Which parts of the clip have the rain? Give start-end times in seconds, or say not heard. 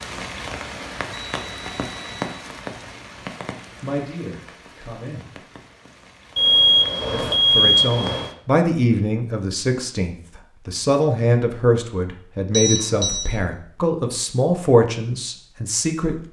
0.0-8.3.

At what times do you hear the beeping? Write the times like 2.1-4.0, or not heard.
1.1-2.3, 6.3-8.3, 12.5-13.2.